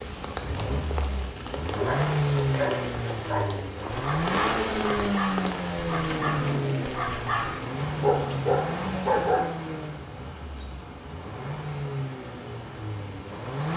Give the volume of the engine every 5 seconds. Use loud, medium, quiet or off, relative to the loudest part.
loud, loud, medium.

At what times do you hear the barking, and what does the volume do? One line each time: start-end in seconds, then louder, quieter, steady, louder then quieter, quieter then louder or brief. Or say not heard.
1.6-9.4 quieter then louder.